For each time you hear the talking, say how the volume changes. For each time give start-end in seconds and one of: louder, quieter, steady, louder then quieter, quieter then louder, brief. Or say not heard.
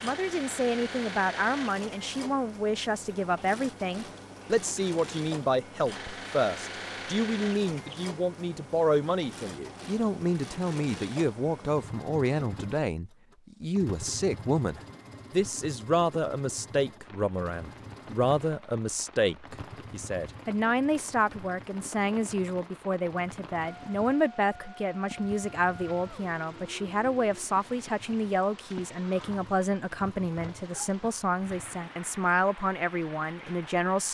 0.0-34.0 steady.